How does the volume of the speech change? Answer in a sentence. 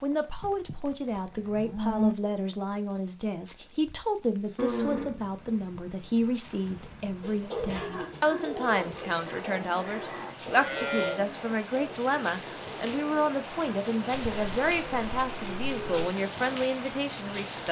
The volume of the speech stays about the same.